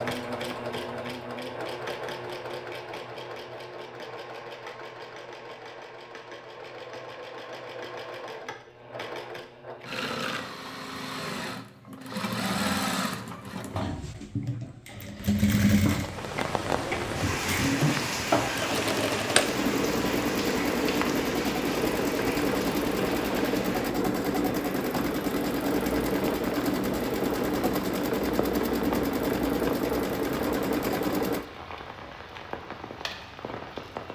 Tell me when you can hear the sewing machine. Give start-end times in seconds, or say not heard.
0.0-31.4.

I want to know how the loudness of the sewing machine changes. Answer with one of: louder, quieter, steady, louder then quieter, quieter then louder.
louder.